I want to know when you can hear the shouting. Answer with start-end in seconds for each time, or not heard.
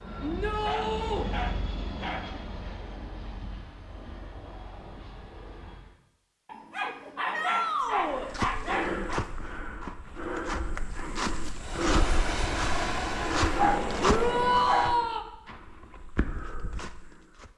0.2-1.2, 7.3-8.3, 14.0-15.2.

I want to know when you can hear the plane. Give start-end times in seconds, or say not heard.
0.0-6.0, 11.6-14.8.